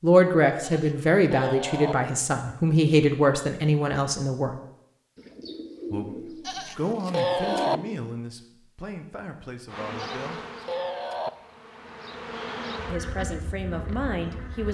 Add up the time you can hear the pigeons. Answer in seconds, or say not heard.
3 s.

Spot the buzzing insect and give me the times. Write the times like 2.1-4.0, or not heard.
9.7-14.6.